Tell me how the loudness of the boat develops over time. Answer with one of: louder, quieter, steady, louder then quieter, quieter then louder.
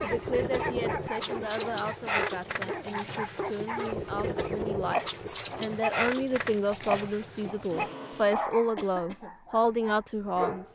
quieter.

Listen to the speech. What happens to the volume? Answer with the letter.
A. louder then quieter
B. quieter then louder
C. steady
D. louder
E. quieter
D.